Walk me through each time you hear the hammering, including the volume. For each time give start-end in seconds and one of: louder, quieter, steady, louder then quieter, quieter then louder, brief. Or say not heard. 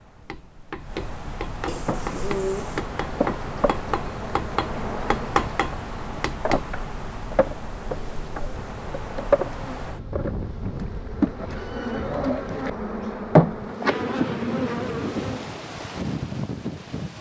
0.2-6.7 louder.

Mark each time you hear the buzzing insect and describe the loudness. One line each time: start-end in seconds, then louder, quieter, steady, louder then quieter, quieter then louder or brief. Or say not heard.
1.8-15.6 louder.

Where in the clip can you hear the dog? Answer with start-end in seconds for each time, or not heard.
not heard.